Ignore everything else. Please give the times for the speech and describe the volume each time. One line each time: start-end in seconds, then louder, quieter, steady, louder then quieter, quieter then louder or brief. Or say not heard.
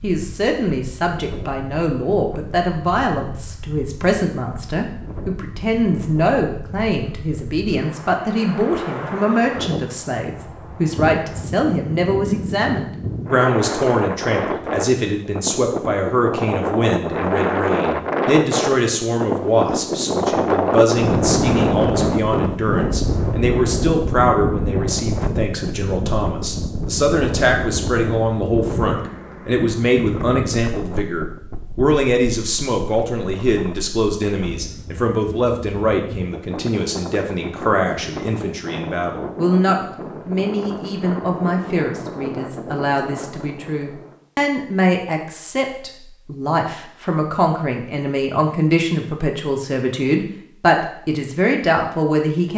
0.0-52.5 steady.